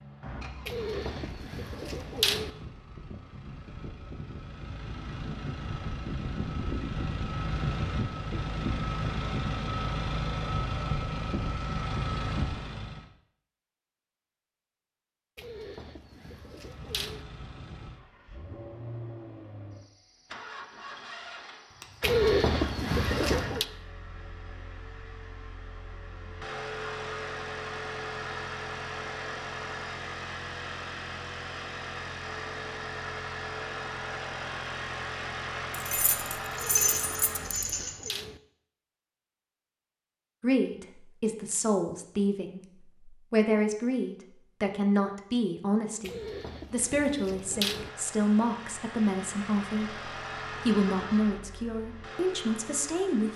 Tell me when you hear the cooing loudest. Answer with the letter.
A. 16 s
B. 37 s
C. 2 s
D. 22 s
D.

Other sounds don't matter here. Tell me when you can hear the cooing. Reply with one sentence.
You can hear the cooing from 0.7 to 2.5 s, from 15.3 to 17.2 s, from 22.0 to 23.6 s, from 36.5 to 38.4 s and from 46.0 to 47.9 s.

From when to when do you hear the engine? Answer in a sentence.
The engine can be heard from 0.0 to 13.1 s, from 16.4 to 37.8 s and from 47.4 to 53.3 s.